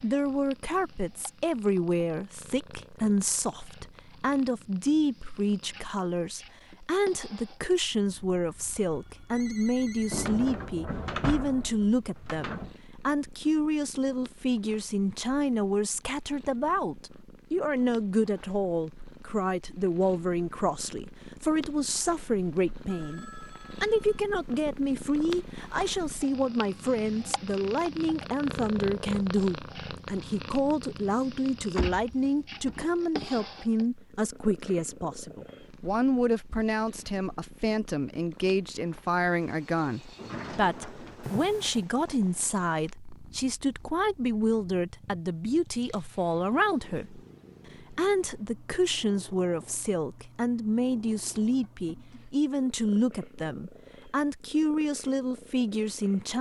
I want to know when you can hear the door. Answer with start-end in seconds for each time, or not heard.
10.1-12.8, 31.8-33.4, 40.1-41.5.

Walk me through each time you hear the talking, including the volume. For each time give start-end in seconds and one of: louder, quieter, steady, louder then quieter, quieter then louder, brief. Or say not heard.
0.0-56.3 steady.